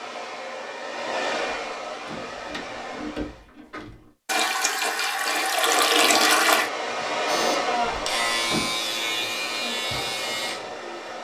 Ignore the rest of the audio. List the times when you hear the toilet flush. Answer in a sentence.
The toilet flush can be heard from 4.2 to 6.7 s.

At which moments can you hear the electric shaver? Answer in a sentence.
The electric shaver can be heard from 7.2 to 11.2 s.